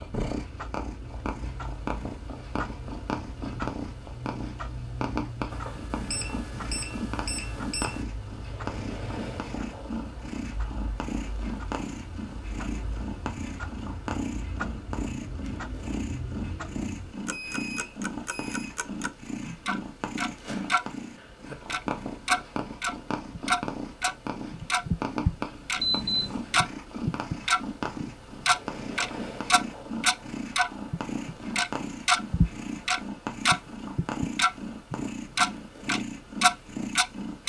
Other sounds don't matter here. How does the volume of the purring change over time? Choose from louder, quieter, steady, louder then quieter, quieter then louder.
steady.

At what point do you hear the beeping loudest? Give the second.
26 s.